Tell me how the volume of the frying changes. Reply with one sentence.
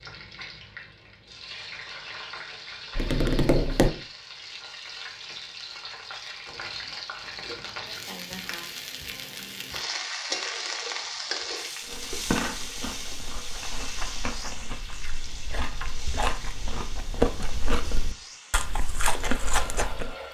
The loudness of the frying goes up, then down.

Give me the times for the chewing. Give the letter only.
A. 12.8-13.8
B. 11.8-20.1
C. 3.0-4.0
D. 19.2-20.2
B.